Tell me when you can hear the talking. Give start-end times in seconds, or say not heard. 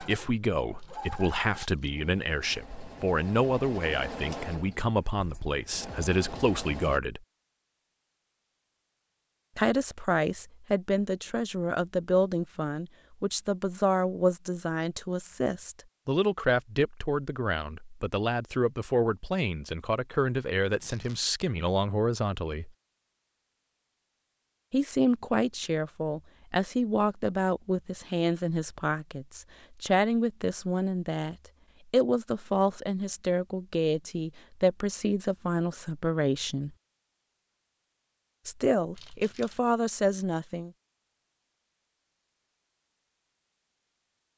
0.0-7.2, 9.6-22.7, 24.7-36.7, 38.5-40.7.